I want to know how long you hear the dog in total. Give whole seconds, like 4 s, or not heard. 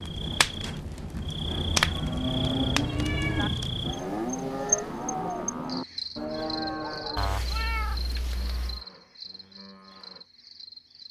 not heard.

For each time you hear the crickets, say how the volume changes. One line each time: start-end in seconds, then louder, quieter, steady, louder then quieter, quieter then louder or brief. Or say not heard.
0.0-11.0 quieter.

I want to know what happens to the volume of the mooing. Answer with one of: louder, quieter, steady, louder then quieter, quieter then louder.
quieter.